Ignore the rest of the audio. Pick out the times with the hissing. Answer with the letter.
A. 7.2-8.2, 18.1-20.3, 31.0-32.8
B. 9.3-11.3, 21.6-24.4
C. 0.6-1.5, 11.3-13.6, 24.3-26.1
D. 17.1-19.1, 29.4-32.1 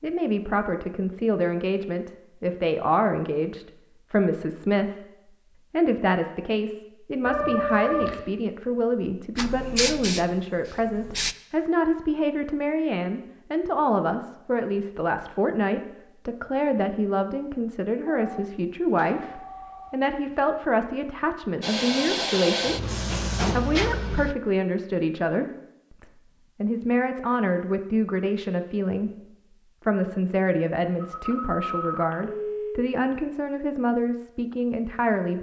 B.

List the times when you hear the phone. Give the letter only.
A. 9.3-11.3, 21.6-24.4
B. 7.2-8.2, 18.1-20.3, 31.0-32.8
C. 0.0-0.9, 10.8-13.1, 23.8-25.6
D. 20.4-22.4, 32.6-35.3
B.